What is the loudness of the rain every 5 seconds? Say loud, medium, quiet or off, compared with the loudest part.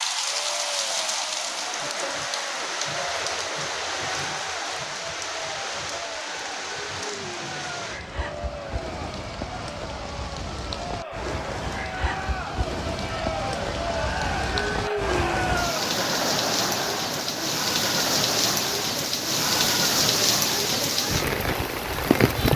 medium, medium, medium, loud, loud.